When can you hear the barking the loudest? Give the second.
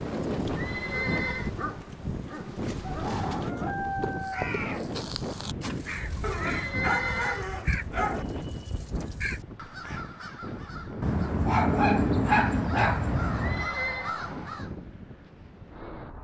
12 s.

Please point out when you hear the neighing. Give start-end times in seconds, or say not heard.
0.5-1.5, 6.3-7.5, 13.3-14.2.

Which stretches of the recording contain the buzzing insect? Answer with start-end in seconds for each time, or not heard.
0.0-3.5.